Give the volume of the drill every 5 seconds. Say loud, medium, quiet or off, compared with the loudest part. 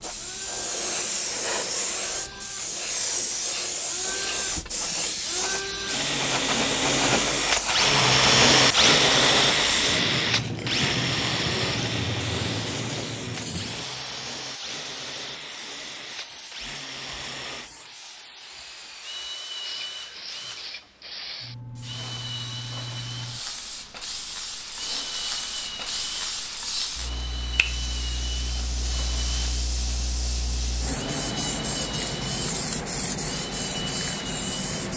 quiet, loud, medium, quiet, quiet, quiet, quiet.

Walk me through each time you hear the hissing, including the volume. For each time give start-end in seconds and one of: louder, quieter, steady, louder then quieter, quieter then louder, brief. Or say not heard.
0.0-34.9 quieter then louder.